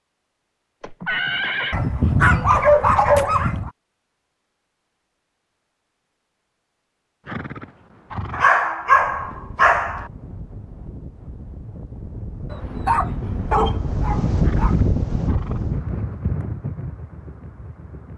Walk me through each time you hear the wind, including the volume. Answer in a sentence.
The wind can be heard from 8.8 to 18.1 s, getting louder then quieter.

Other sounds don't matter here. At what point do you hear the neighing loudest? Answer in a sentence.
The volume of the neighing peaks at 1 second.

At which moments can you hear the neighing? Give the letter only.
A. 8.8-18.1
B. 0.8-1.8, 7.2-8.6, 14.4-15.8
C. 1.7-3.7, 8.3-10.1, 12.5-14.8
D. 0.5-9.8
B.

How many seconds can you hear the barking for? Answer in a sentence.
You can hear the barking for 6 seconds altogether.